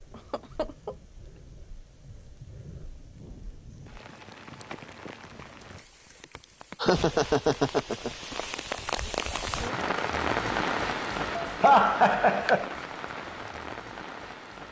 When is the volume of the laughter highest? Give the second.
12 s.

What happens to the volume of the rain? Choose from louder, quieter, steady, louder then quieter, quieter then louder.
louder then quieter.